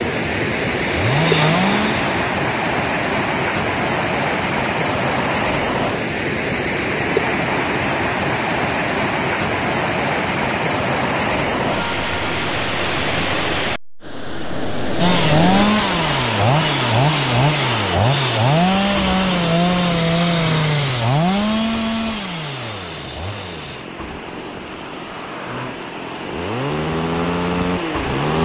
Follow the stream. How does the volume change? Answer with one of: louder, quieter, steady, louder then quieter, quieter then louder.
quieter.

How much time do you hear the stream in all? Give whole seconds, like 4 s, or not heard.
28 s.